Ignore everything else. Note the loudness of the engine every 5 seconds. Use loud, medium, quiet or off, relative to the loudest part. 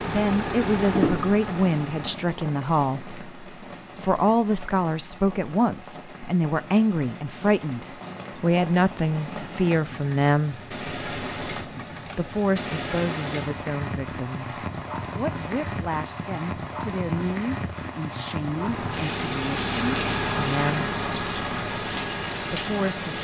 loud, off, off, loud, loud.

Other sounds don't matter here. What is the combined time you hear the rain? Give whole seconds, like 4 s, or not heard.
23 s.